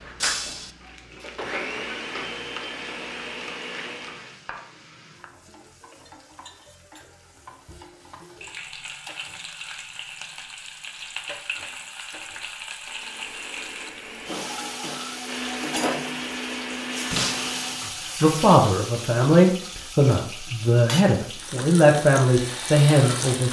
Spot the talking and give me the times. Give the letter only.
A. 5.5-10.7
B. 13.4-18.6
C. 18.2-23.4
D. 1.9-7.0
C.